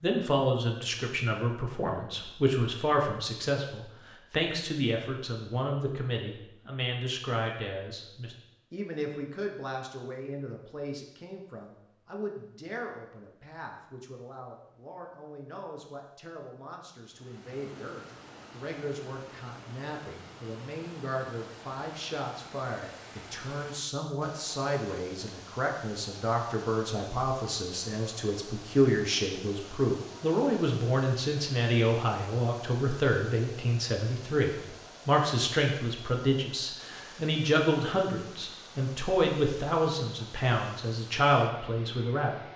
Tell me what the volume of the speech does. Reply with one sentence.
The volume of the speech goes down, then up.